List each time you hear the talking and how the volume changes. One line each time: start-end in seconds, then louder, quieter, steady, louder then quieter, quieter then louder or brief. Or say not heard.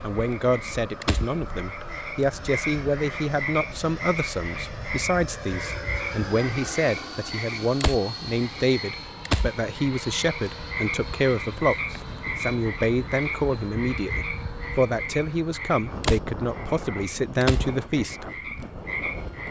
0.0-18.3 steady.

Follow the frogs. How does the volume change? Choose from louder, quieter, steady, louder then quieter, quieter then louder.
steady.